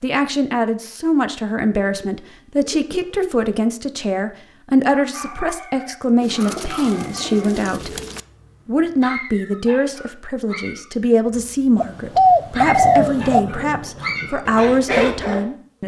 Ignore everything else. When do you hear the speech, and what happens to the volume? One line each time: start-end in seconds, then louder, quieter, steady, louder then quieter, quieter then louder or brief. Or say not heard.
0.0-8.0 steady
8.7-15.8 steady.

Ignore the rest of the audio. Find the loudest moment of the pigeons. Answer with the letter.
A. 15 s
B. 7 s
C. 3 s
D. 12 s
D.